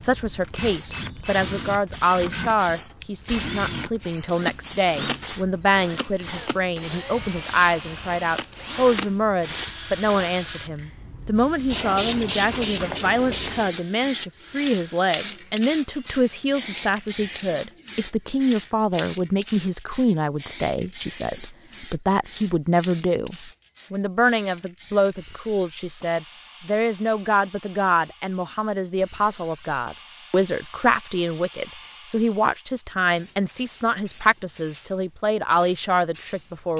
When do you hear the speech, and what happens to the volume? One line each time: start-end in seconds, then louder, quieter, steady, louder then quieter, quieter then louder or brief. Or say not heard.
0.0-36.7 steady.